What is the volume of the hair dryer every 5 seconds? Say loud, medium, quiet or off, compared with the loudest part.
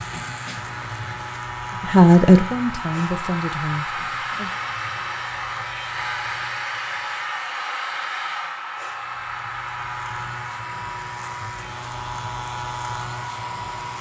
loud, loud, medium.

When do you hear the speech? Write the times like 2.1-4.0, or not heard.
1.8-4.5.